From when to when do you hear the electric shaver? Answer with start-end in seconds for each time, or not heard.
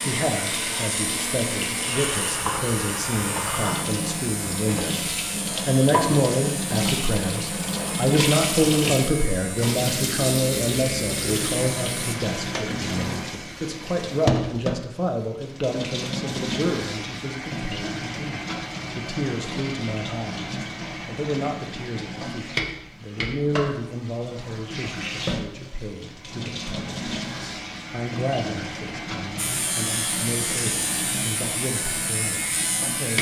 0.0-12.0, 29.4-33.1.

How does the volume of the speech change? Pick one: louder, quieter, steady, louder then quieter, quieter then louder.
quieter.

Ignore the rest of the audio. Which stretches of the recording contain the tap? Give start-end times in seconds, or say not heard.
0.0-33.1.